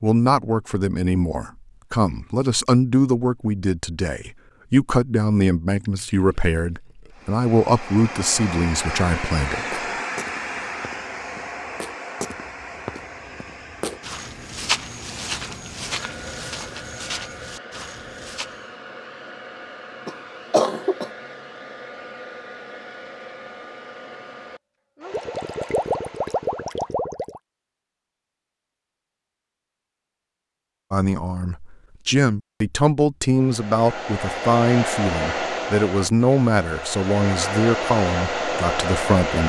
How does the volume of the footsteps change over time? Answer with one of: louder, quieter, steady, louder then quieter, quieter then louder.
louder then quieter.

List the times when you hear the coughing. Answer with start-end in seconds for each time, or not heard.
20.1-21.1.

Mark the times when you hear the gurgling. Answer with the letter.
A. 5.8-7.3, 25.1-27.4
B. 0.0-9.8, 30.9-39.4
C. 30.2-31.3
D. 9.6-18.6
A.